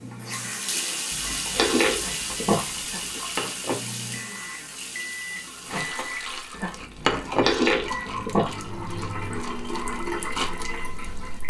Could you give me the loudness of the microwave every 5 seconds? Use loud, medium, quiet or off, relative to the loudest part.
medium, loud, quiet.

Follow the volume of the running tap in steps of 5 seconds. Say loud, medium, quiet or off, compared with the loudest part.
medium, medium, loud.